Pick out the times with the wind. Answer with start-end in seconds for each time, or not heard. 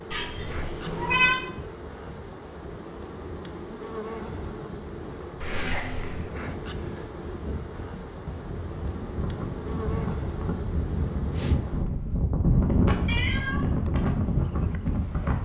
0.0-15.4.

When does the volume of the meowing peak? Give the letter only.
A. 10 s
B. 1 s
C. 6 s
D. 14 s
B.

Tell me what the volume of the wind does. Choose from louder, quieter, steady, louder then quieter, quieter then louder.
louder.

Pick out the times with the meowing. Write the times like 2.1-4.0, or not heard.
0.1-1.4, 5.4-6.2, 13.1-13.7.